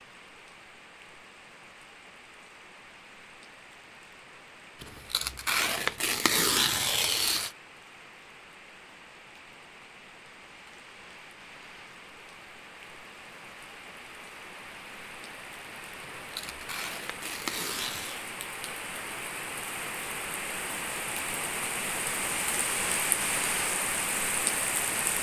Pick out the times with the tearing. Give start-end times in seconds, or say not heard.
4.8-7.5, 16.1-18.2.